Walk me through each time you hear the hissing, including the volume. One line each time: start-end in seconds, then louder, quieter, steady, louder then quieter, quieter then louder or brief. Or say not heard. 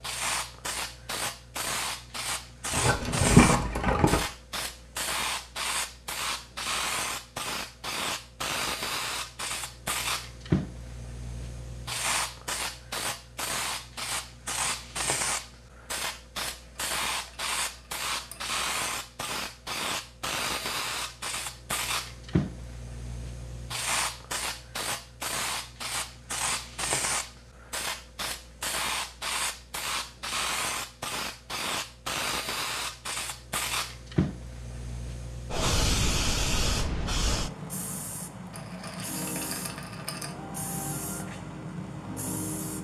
0.0-42.7 steady.